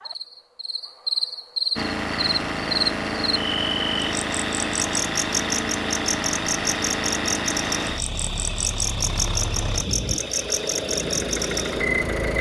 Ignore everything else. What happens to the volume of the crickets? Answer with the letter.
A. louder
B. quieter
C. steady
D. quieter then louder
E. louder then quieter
C.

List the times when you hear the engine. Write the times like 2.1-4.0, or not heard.
1.8-12.3.